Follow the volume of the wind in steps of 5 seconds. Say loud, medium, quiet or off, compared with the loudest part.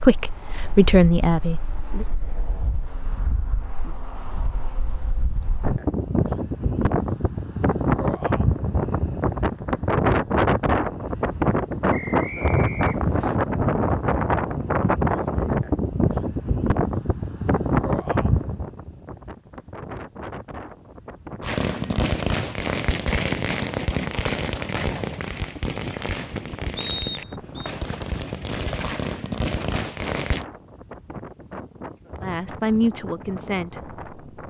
quiet, loud, loud, loud, quiet, quiet, quiet.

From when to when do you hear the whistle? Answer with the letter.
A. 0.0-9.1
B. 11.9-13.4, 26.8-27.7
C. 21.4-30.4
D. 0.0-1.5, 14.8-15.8
B.